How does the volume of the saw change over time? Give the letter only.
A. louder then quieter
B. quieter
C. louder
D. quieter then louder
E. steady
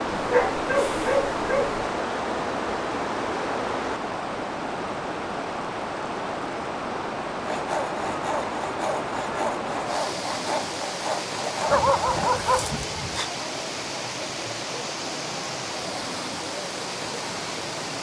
E.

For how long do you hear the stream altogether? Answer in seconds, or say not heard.
18 s.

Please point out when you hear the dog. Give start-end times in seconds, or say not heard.
0.1-1.9, 11.7-13.3.